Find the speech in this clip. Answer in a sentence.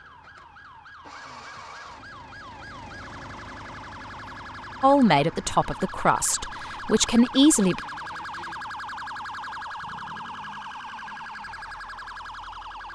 You can hear the speech from 4.8 to 7.8 s.